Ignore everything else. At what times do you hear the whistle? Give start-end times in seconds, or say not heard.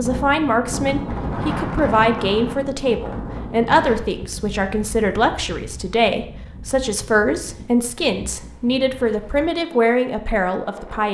not heard.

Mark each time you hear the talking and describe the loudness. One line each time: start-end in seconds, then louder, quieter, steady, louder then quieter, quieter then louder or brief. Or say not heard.
0.0-11.0 steady.